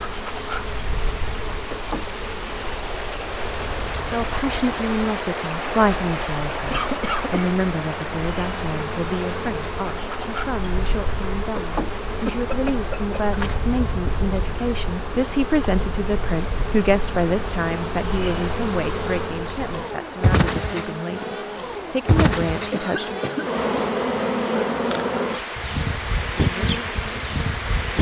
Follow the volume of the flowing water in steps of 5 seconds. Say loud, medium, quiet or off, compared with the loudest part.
loud, loud, medium, medium, medium, medium.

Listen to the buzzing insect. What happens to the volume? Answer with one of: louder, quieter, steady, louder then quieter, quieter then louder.
louder.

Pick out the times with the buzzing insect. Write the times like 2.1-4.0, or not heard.
0.0-27.9.